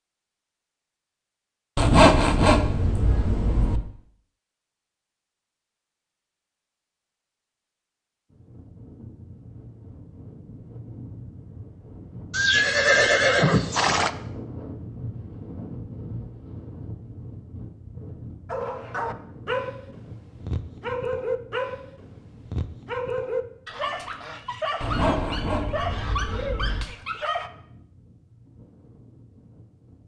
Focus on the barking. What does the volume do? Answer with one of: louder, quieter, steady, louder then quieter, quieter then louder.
steady.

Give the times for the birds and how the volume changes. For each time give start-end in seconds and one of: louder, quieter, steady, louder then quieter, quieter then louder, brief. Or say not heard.
not heard.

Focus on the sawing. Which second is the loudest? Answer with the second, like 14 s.
2 s.